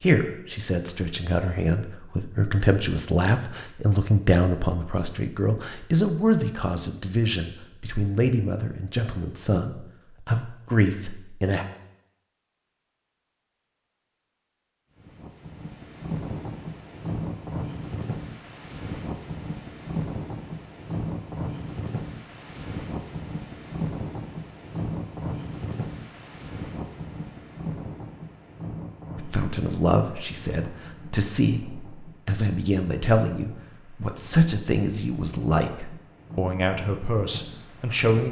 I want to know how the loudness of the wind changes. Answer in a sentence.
The loudness of the wind goes down.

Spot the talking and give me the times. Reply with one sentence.
You can hear the talking from 0.0 to 11.7 s and from 29.1 to 38.2 s.